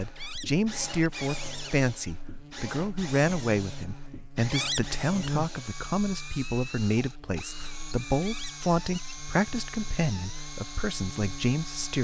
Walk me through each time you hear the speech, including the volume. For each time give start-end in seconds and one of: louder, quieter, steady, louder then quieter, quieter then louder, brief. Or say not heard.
0.0-11.9 steady.